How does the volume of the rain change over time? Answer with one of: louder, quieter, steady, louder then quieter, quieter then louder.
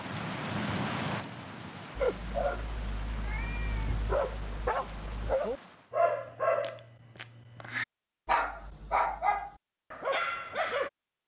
quieter.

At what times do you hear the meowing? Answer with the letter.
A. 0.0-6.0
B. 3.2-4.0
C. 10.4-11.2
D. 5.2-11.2
B.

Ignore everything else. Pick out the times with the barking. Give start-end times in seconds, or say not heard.
1.9-10.9.